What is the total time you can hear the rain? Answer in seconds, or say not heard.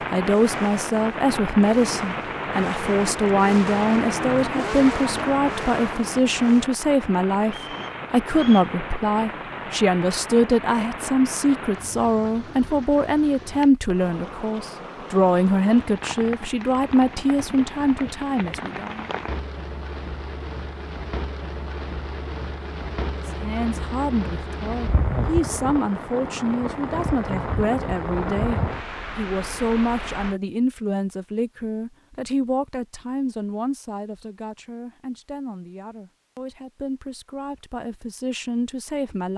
30 s.